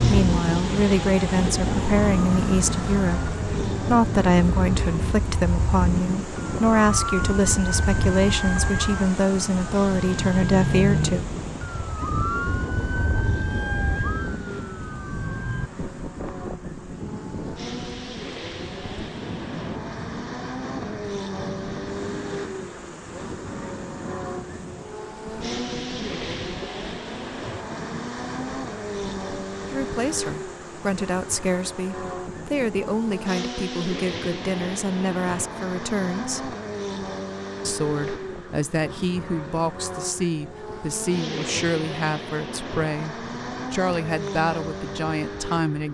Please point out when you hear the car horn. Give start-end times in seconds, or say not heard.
not heard.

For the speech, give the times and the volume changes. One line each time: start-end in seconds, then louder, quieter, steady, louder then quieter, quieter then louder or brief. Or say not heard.
0.0-11.2 steady
29.7-36.5 steady
37.6-45.8 steady.